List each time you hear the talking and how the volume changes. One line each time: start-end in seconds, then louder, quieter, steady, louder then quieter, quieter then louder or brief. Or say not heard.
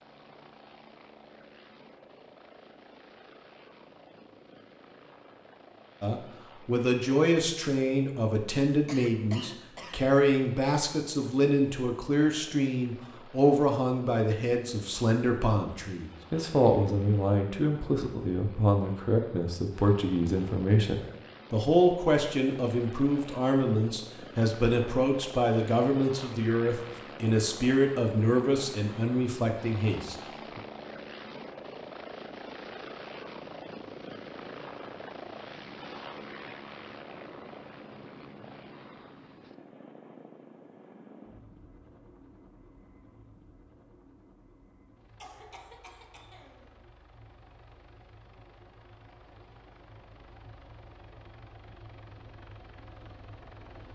6.0-30.6 steady.